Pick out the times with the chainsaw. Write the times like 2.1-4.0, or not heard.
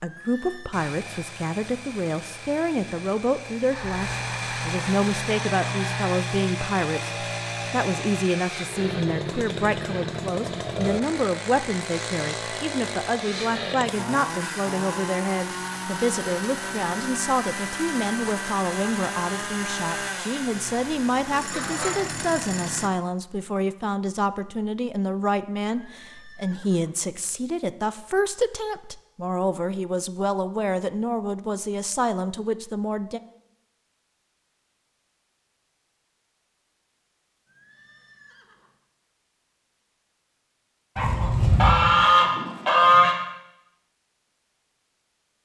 0.0-22.9.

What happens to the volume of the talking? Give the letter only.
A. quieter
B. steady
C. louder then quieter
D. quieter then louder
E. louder
B.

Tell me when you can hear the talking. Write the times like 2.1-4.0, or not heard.
0.0-33.2.